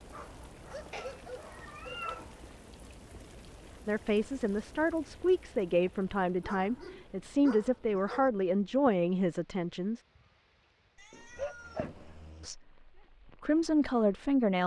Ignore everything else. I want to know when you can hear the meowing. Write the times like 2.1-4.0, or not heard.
0.9-2.4, 10.9-12.2.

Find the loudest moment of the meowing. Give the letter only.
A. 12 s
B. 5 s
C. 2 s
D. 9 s
C.